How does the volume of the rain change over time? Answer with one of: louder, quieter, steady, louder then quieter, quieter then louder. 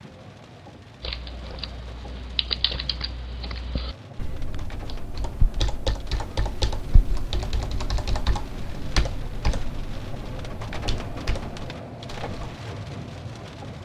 louder.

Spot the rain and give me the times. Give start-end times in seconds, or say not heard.
0.0-13.8.